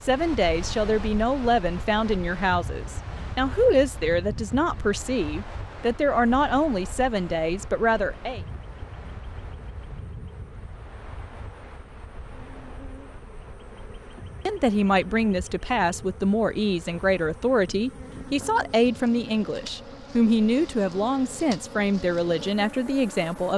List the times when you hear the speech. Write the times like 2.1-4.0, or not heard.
0.0-8.4, 14.4-23.5.